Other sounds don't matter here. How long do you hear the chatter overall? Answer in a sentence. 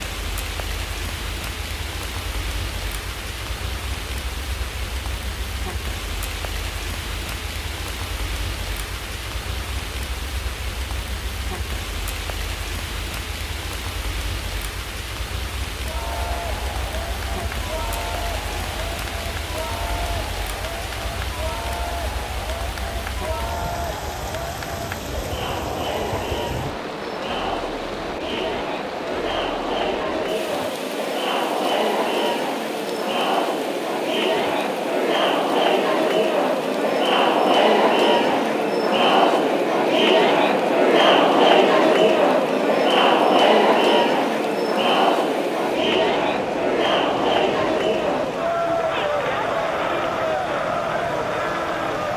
The chatter can be heard for 36 seconds in total.